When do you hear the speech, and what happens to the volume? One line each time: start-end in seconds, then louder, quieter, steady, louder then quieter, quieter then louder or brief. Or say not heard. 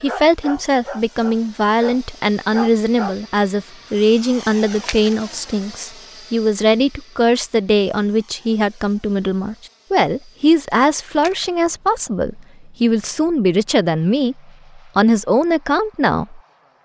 0.0-16.4 steady.